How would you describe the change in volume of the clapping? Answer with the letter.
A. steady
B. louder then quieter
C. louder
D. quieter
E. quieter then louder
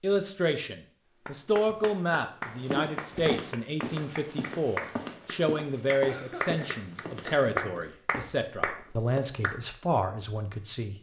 C.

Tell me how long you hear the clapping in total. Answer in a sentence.
You can hear the clapping for 8 seconds altogether.